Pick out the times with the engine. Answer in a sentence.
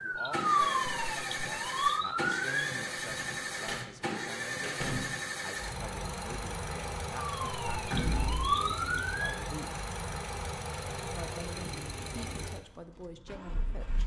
The engine can be heard from 0.0 to 14.0 s.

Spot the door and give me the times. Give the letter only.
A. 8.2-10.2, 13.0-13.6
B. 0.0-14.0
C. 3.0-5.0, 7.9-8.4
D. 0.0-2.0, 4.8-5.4
C.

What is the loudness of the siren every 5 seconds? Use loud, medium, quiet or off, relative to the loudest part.
loud, loud, off.